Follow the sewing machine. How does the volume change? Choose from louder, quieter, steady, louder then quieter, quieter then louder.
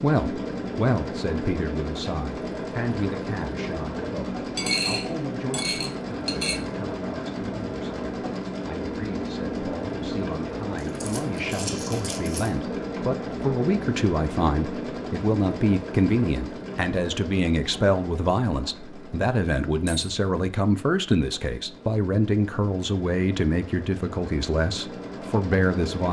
quieter.